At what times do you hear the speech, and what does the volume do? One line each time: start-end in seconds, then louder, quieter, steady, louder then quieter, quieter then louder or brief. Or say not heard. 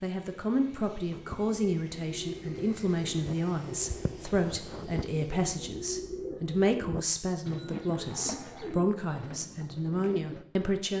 0.0-10.9 steady.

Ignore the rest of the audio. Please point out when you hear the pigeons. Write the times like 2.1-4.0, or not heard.
1.1-10.4.